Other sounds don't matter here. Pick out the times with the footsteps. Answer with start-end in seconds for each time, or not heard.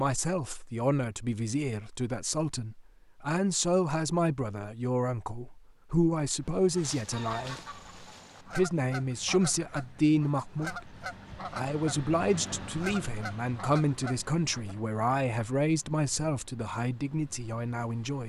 not heard.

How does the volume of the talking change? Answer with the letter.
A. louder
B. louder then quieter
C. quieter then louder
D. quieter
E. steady
E.